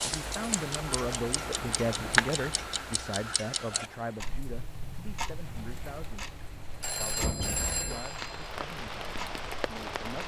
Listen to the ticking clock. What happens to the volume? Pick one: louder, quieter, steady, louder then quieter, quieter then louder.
louder then quieter.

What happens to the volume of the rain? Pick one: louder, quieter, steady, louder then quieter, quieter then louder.
quieter then louder.